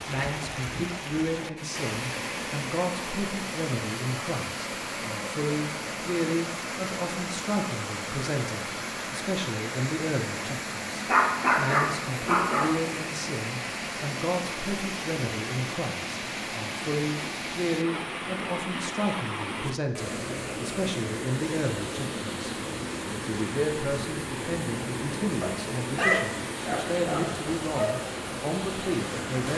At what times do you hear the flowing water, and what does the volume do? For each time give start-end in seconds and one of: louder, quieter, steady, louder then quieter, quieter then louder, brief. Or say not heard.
0.0-29.5 steady.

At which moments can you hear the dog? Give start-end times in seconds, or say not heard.
11.1-12.8, 25.4-28.0.